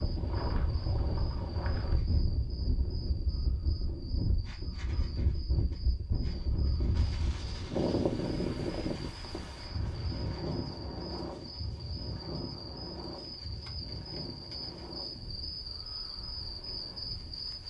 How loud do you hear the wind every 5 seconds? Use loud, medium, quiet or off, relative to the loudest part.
loud, loud, medium, quiet.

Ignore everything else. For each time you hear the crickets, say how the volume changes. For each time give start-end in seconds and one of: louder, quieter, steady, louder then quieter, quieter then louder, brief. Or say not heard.
0.0-17.6 louder.